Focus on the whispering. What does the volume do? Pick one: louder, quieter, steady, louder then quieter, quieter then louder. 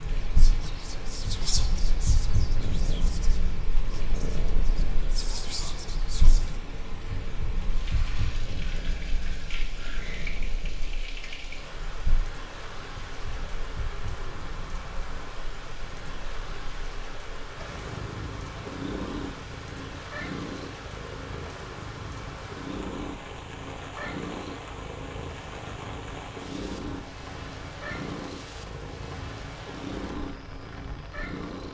quieter then louder.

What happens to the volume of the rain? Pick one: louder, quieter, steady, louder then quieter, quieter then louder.
steady.